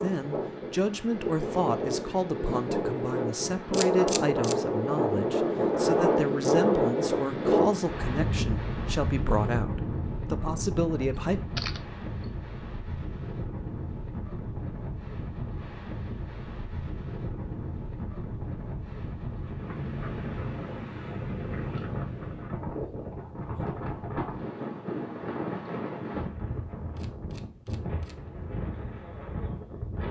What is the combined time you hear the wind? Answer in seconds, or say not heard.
30 s.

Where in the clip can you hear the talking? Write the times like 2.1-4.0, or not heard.
0.0-11.4.